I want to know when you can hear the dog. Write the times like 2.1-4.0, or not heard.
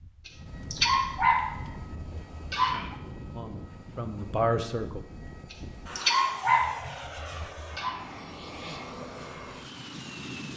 0.2-3.0, 5.5-8.0.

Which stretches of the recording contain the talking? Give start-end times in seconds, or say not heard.
3.4-5.0.